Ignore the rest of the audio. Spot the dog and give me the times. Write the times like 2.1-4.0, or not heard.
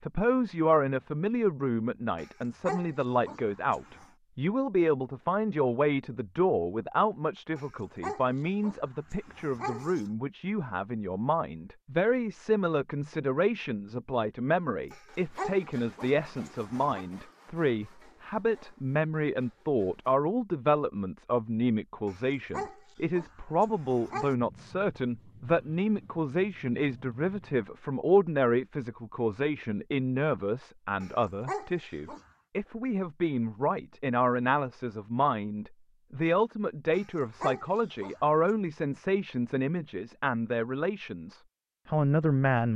2.1-4.1, 7.5-10.1, 14.9-17.1, 22.1-24.4, 31.0-32.2, 36.9-38.4.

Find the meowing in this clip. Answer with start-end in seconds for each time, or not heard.
not heard.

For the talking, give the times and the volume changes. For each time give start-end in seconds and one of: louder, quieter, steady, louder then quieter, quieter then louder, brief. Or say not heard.
0.0-42.7 steady.